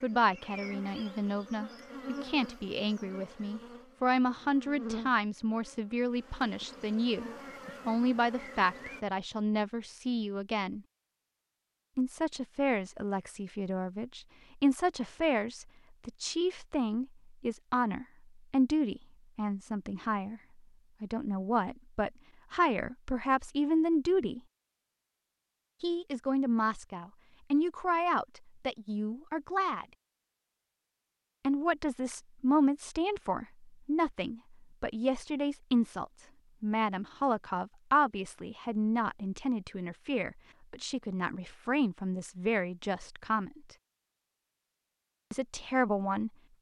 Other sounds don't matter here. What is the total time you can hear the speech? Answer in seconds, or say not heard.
40 s.